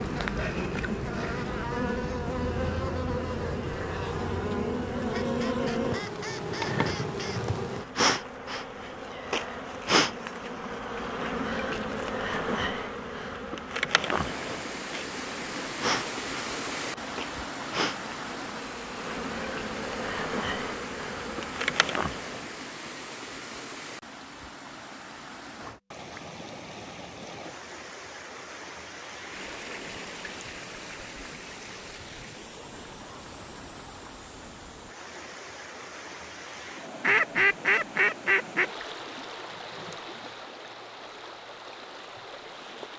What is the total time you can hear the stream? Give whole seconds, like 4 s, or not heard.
29 s.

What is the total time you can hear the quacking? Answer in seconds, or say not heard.
4 s.